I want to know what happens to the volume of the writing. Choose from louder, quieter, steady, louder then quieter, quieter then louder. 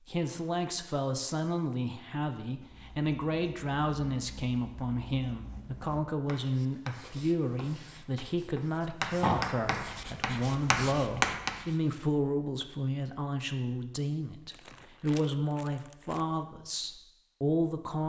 louder.